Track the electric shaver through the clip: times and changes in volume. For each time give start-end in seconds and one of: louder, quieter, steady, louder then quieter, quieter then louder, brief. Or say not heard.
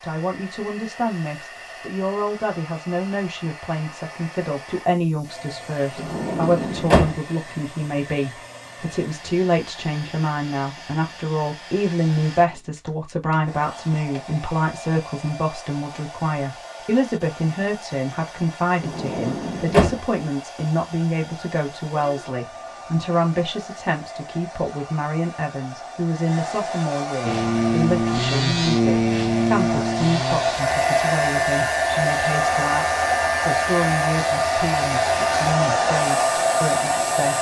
27.2-37.3 quieter.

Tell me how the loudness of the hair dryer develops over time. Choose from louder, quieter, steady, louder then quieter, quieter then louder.
louder.